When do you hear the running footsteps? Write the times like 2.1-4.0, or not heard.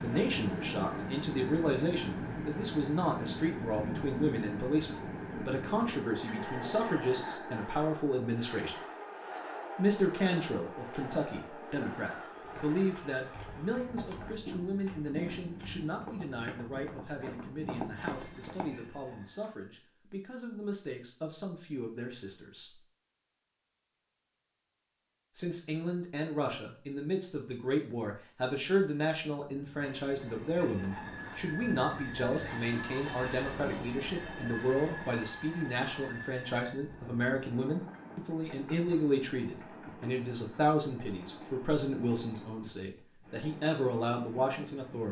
12.4-18.8.